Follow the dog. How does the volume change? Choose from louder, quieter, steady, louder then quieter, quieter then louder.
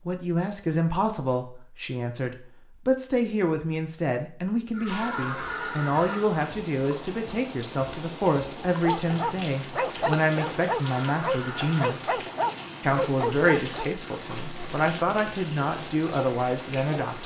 steady.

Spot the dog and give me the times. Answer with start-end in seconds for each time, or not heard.
8.6-13.9.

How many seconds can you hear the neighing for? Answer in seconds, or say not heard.
3 s.